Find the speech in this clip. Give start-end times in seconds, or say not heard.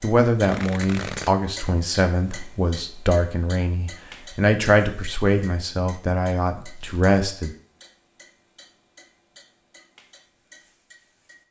0.0-7.5.